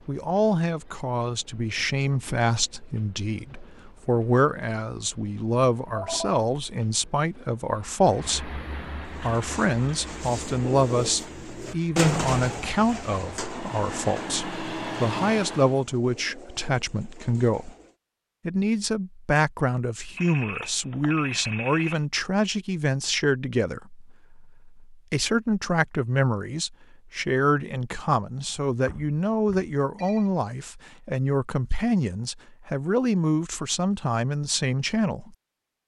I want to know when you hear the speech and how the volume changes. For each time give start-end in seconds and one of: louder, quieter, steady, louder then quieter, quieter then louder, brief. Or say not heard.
0.1-17.8 steady
18.4-35.4 steady.